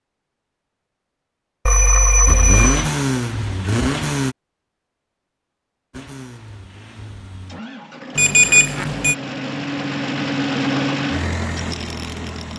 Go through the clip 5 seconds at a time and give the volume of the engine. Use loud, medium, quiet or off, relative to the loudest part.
loud, medium, loud.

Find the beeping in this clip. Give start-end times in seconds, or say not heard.
1.6-2.9, 8.2-9.2.